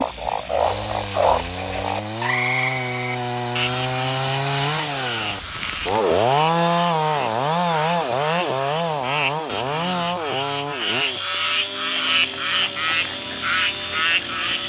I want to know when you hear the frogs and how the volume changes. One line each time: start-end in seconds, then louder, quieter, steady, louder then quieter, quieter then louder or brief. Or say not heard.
0.0-14.6 quieter then louder.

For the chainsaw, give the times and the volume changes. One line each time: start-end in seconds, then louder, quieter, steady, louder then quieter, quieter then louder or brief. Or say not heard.
0.0-14.6 louder then quieter.